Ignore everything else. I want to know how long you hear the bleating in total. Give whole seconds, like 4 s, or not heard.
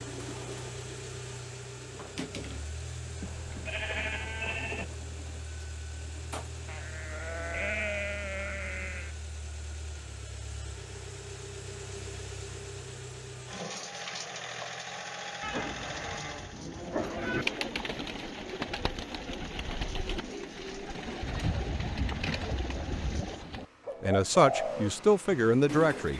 8 s.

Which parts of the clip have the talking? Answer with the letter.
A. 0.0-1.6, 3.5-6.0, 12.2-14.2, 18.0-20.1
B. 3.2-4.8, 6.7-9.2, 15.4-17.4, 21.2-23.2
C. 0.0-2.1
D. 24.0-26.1
D.